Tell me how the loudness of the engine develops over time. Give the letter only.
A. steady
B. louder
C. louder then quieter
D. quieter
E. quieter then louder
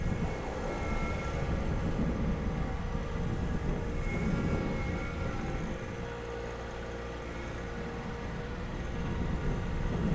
A.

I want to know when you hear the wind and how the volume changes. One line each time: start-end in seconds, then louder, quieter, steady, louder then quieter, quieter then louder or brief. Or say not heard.
0.0-10.1 quieter then louder.